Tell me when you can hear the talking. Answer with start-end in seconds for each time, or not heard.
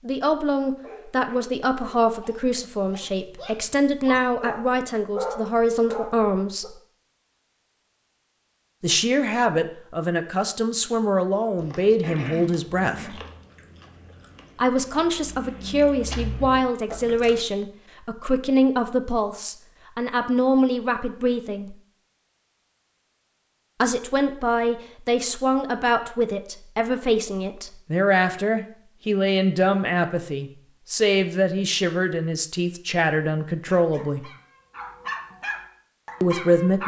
0.0-6.8, 8.8-13.2, 14.6-21.8, 23.8-34.3, 36.2-36.8.